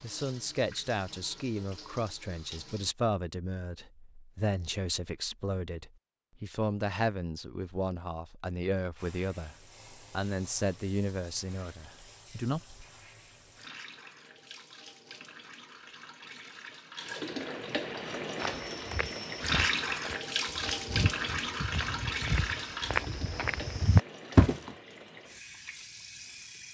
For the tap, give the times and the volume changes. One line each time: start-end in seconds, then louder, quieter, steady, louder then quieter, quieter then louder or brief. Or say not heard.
0.0-2.9 brief
8.9-26.6 louder then quieter.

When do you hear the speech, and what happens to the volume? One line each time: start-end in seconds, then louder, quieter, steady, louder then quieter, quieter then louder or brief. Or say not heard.
0.0-12.6 steady.